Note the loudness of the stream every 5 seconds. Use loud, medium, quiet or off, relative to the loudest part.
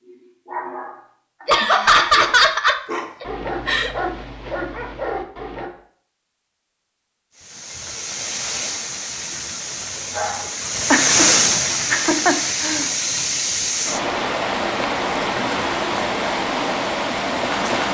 off, medium, loud, loud.